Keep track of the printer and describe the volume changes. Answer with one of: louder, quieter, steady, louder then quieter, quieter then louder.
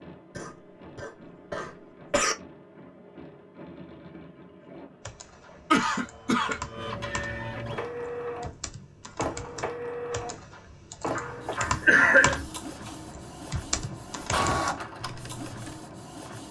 louder.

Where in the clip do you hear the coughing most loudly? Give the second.
12 s.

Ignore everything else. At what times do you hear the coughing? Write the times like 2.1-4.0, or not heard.
0.3-2.4, 5.7-6.6, 11.2-12.4.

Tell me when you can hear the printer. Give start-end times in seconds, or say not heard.
0.0-16.4.